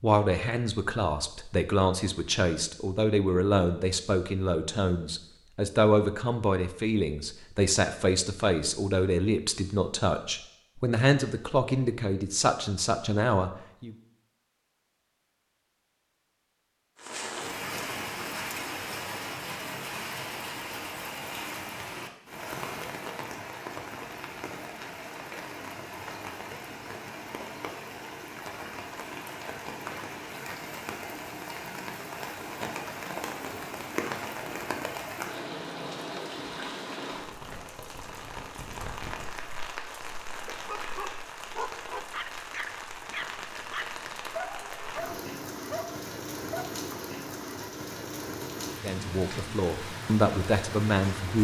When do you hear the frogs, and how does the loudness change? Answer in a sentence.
The frogs can't be heard in this clip.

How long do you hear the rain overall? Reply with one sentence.
You can hear the rain for 34 seconds altogether.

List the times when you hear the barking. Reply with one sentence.
You can hear the barking from 40.5 to 46.7 s.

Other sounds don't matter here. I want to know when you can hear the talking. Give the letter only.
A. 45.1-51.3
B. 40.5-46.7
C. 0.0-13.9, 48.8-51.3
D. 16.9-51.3
C.